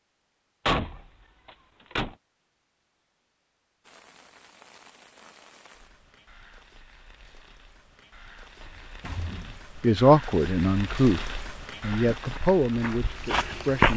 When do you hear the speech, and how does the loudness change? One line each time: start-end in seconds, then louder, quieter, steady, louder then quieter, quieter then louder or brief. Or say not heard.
9.8-13.9 quieter.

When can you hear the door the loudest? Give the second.
1 s.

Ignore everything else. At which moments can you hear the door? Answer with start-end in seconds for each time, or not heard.
0.7-2.1, 8.6-9.7.